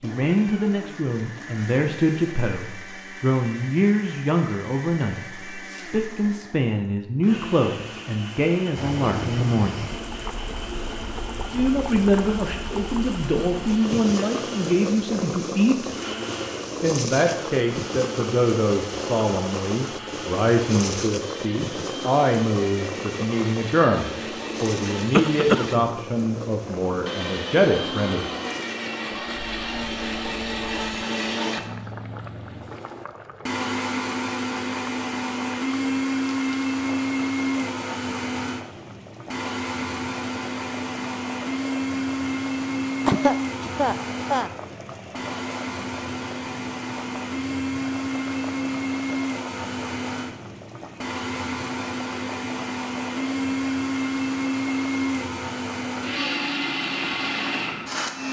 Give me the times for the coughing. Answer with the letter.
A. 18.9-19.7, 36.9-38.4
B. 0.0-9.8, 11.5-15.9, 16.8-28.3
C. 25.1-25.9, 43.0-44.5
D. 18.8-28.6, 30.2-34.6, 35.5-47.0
C.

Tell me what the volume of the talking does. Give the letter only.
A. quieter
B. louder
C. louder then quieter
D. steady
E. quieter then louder
D.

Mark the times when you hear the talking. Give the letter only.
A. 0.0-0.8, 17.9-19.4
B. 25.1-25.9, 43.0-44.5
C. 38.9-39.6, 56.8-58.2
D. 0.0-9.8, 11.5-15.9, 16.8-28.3
D.